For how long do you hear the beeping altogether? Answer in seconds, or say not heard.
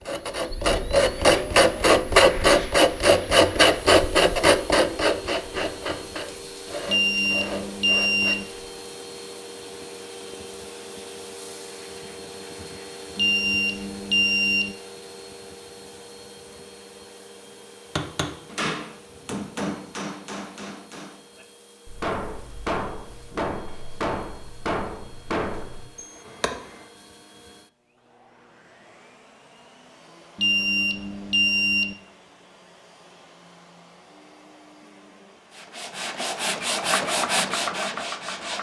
5 s.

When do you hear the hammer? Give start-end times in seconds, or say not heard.
17.9-26.9.